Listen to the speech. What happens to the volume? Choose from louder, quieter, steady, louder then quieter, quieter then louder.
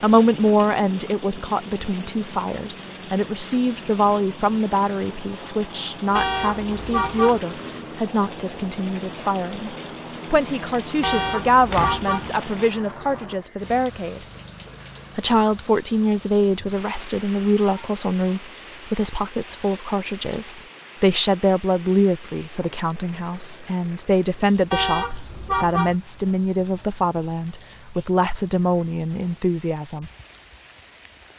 steady.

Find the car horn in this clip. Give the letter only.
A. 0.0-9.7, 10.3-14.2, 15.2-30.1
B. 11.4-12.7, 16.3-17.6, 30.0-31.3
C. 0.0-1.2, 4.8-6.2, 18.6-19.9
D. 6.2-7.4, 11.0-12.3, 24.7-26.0
D.